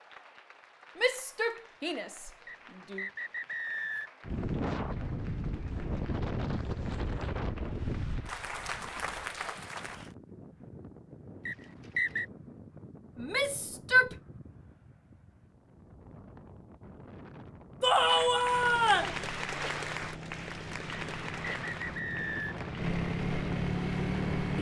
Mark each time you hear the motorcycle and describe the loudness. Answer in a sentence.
You can hear the motorcycle from 18.4 to 24.5 s, getting louder.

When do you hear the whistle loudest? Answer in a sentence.
The loudest moment of the whistle is at 12 seconds.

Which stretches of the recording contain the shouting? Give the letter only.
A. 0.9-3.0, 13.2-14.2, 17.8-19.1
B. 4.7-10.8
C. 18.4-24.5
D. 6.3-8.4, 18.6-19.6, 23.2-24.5
A.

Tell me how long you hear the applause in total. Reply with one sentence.
The applause can be heard for 17 seconds in total.